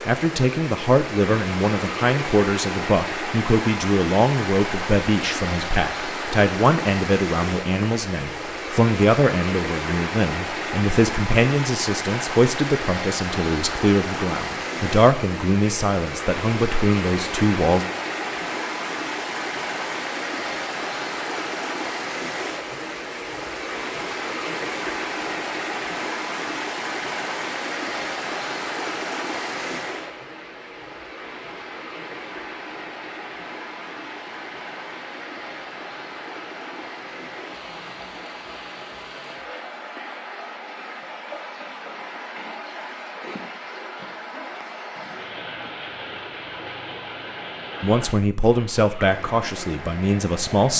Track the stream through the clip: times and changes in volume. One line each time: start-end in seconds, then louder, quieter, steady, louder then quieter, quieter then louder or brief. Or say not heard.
0.0-50.7 quieter.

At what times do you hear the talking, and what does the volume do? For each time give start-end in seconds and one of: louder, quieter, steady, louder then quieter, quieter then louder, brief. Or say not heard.
0.1-17.9 steady
47.8-50.7 brief.